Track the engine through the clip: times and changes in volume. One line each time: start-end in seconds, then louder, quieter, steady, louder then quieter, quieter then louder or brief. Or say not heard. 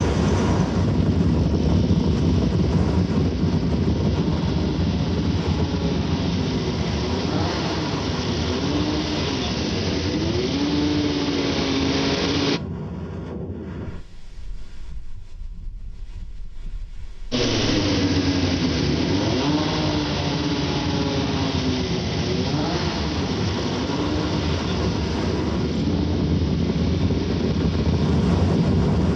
0.0-12.6 louder
17.3-29.1 quieter.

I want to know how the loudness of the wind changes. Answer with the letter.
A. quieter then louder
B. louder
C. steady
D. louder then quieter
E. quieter
A.